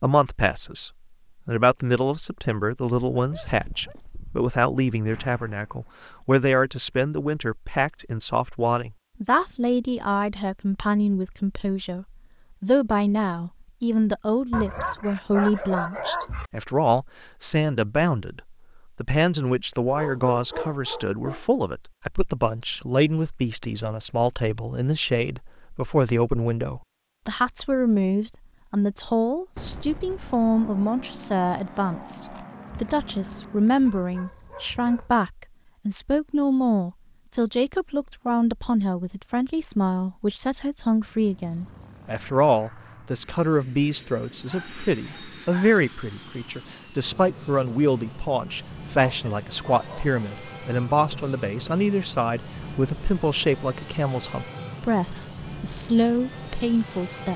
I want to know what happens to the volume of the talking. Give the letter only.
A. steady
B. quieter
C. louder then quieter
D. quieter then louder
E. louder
A.